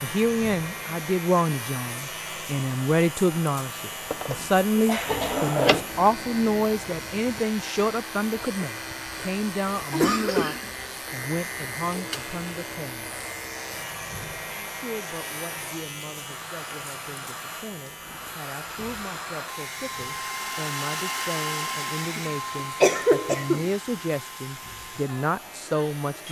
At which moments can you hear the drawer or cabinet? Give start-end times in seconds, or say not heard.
4.1-5.9.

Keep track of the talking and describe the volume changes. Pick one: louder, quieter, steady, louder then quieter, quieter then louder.
quieter then louder.